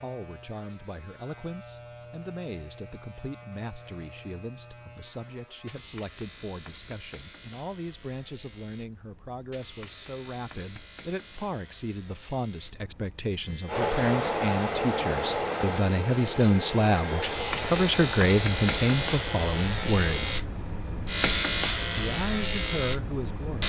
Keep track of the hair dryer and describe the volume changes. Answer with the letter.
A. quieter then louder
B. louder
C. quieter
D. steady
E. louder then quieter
C.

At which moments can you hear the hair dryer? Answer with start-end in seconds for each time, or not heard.
13.7-20.4.